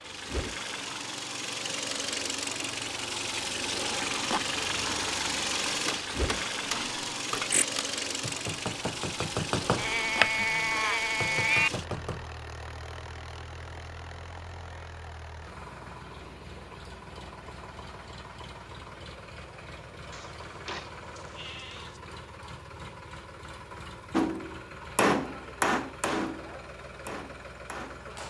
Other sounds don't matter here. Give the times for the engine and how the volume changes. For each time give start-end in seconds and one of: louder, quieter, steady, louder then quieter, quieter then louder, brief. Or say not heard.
0.0-28.2 quieter.